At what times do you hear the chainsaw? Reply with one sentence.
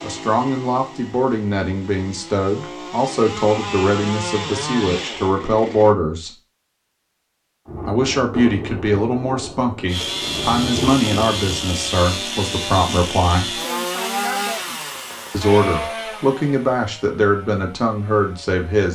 The chainsaw can be heard from 0.0 to 6.0 s and from 9.8 to 18.9 s.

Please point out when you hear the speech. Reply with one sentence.
The speech can be heard from 0.0 to 6.3 s, from 7.8 to 13.6 s and from 15.3 to 18.9 s.